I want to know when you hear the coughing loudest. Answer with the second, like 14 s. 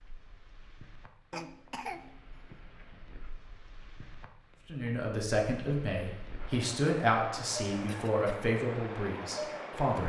2 s.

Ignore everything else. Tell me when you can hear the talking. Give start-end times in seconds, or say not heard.
4.7-10.0.